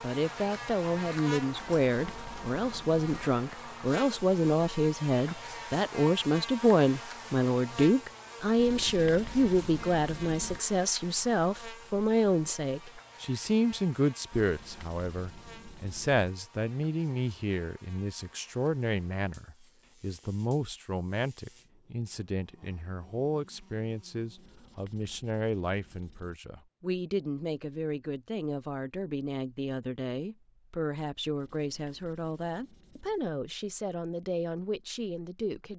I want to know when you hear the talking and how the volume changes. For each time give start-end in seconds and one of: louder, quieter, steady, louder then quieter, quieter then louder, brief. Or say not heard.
0.0-35.7 quieter.